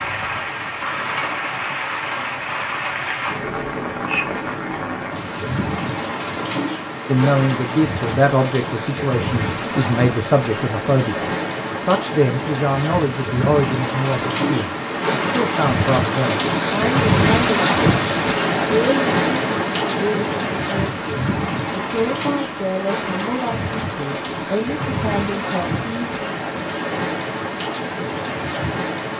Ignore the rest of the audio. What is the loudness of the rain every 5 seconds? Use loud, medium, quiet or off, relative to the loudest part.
medium, medium, medium, loud, medium, medium.